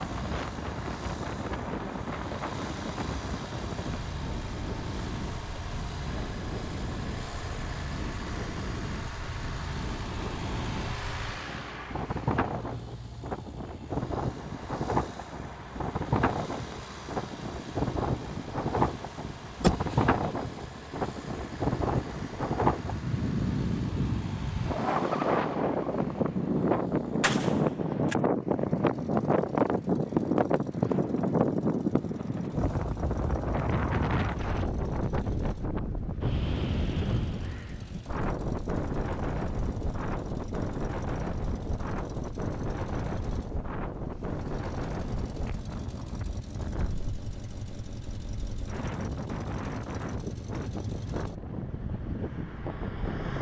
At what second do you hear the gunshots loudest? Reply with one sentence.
The loudest moment of the gunshots is at 20 seconds.